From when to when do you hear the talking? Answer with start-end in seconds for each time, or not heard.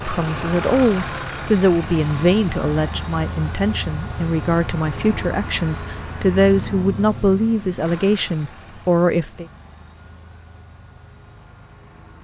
0.1-9.4.